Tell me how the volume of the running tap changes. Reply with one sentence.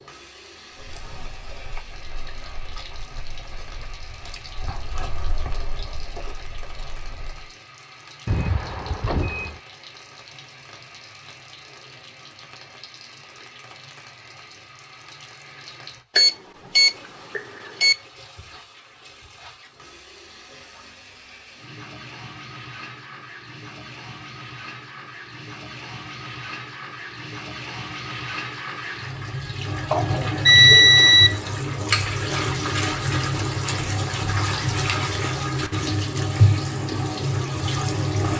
The volume of the running tap goes up.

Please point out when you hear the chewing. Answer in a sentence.
You can hear the chewing from 0.7 to 7.5 s.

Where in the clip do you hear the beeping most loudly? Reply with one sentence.
The volume of the beeping peaks at 31 seconds.